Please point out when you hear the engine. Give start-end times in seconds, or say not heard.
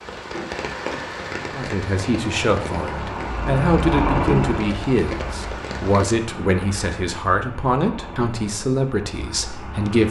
0.1-10.0.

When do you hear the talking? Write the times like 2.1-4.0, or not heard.
1.5-10.0.